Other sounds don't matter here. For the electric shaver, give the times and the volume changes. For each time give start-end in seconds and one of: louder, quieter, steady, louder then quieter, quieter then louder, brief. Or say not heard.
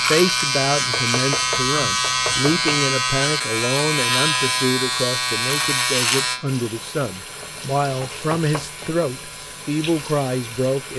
0.0-10.9 quieter.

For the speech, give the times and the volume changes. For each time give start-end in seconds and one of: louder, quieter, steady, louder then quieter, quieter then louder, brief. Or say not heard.
0.0-10.9 steady.